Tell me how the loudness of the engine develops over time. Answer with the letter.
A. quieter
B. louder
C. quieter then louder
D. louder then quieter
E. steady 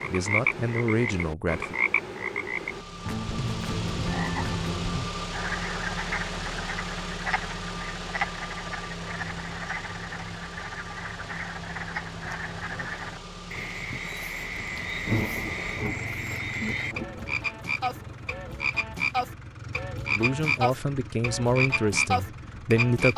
A.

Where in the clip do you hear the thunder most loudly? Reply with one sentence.
The loudest moment of the thunder is at 15 seconds.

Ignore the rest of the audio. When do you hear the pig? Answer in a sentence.
The pig can't be heard in this clip.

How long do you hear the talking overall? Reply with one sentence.
You can hear the talking for 5 seconds altogether.